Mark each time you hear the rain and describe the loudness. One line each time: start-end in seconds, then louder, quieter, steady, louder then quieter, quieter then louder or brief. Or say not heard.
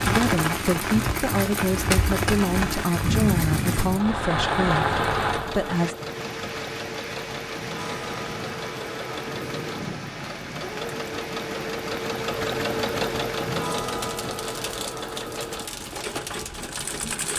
0.0-17.3 quieter.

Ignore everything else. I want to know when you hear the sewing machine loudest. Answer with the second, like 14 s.
13 s.